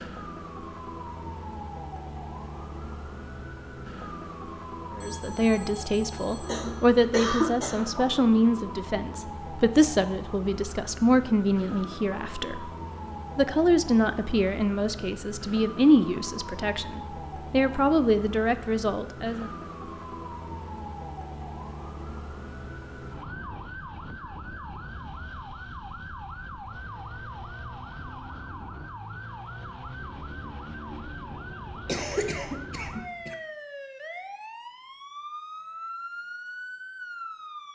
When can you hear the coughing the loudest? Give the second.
7 s.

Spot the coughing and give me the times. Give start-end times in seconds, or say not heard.
6.4-8.2, 31.9-33.4.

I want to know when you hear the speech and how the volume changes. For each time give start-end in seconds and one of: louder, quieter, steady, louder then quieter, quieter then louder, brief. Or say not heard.
5.0-12.7 steady
13.3-19.5 steady.